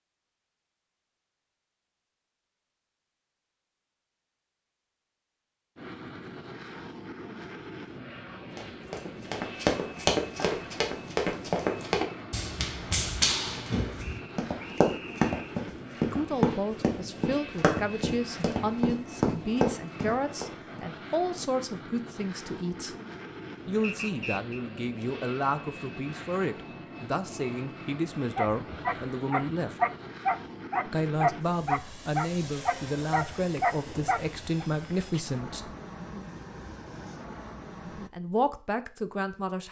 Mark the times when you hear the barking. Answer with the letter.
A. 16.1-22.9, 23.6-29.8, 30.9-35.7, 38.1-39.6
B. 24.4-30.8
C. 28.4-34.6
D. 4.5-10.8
C.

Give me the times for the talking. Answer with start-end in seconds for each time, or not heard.
16.1-22.9, 23.6-29.8, 30.9-35.7, 38.1-39.6.